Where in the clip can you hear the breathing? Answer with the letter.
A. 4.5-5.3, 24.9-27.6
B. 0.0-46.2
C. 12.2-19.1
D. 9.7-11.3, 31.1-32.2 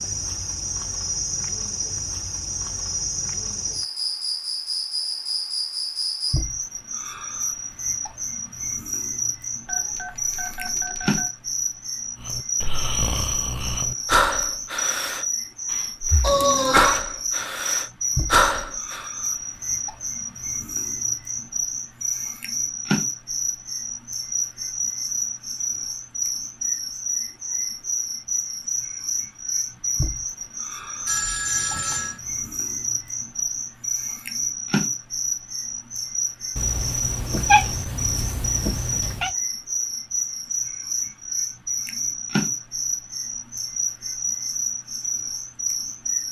C.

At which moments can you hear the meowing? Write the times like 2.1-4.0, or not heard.
16.2-17.0, 36.5-39.3.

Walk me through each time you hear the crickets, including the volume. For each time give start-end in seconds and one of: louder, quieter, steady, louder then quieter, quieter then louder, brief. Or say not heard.
0.0-46.2 steady.